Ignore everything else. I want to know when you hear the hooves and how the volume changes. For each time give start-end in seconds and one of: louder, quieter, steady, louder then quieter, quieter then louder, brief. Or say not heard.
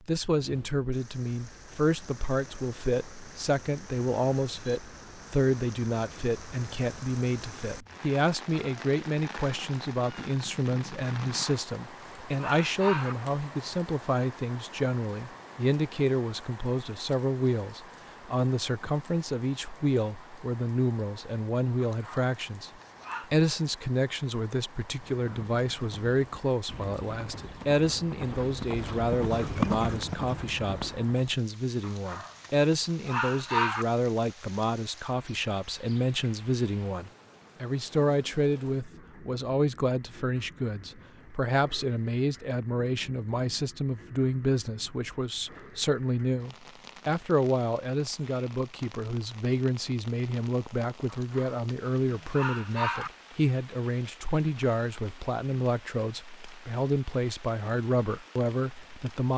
24.8-31.1 louder.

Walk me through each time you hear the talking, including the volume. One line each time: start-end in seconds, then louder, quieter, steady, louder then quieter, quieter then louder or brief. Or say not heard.
0.1-22.7 steady
23.3-59.3 steady.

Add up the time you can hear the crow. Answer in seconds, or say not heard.
not heard.